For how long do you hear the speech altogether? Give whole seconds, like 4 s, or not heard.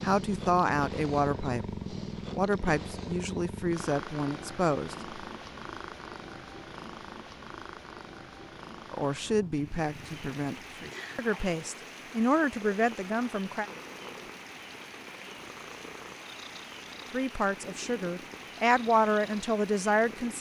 13 s.